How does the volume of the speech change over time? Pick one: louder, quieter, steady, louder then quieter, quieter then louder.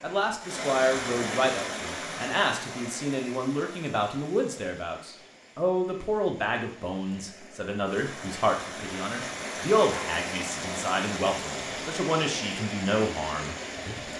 steady.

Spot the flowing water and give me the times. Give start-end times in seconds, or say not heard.
0.0-14.1.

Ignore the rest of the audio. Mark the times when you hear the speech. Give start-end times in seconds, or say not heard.
0.0-14.0.